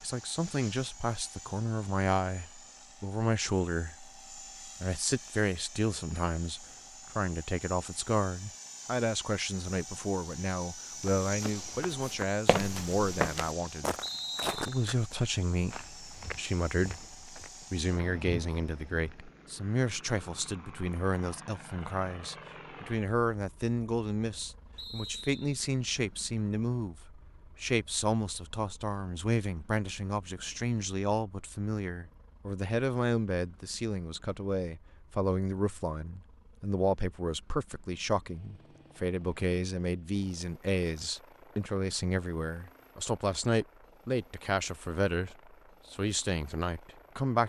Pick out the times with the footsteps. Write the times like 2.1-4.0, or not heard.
11.1-19.1.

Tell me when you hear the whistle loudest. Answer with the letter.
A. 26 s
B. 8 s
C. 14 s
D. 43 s
C.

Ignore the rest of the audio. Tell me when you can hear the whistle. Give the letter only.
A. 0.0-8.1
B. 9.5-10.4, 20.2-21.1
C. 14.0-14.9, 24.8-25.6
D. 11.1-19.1
C.